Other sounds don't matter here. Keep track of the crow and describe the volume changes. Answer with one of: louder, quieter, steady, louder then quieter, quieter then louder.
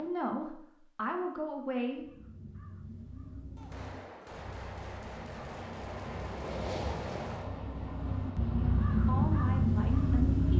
louder.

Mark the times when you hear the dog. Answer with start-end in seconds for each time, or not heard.
not heard.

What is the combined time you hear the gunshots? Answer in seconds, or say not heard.
4 s.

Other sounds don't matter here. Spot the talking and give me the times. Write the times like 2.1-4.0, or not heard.
0.0-2.0, 8.6-10.5.